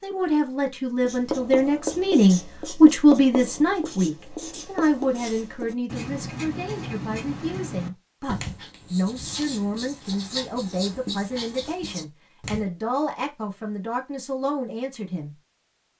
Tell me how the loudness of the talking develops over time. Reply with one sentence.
The loudness of the talking goes down.